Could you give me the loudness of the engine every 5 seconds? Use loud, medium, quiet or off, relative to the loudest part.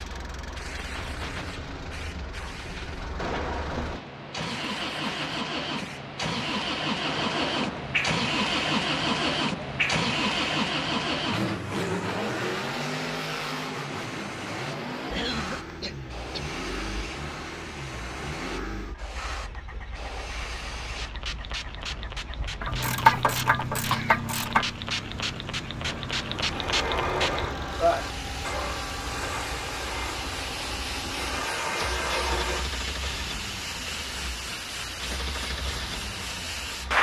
medium, loud, loud, medium, medium, medium, medium, medium.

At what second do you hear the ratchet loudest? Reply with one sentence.
The volume of the ratchet peaks at 23 seconds.